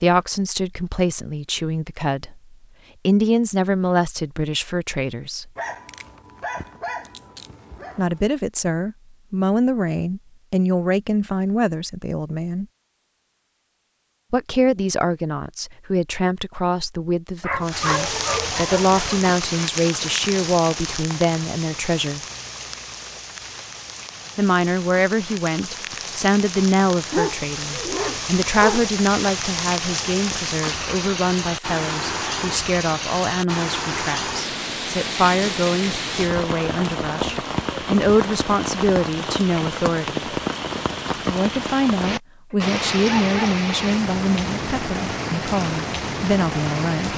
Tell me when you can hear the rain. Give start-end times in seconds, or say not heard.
17.6-47.1.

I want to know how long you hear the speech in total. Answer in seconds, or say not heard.
40 s.